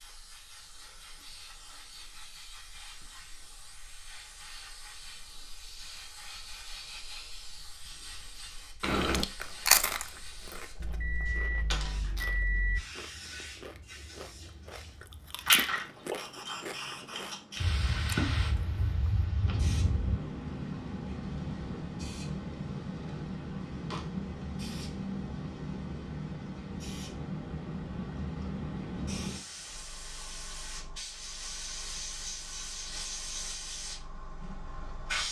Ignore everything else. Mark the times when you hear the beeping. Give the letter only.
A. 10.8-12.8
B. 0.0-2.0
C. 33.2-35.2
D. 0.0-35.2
A.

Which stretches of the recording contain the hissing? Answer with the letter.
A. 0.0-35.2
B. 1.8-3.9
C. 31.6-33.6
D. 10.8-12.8
A.